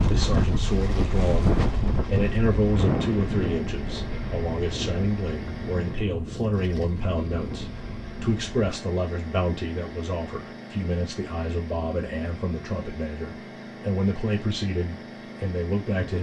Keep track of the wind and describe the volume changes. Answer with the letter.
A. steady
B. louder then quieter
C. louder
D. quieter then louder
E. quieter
E.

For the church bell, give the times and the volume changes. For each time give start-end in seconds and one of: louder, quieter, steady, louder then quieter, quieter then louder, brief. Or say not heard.
not heard.